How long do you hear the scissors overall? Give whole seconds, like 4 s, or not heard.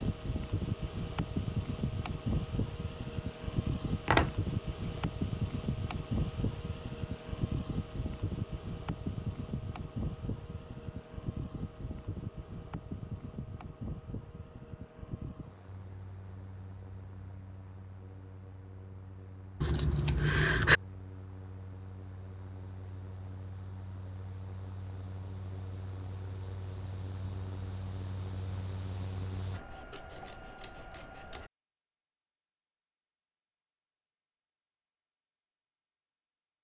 4 s.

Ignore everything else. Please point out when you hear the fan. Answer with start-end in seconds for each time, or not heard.
0.0-29.6.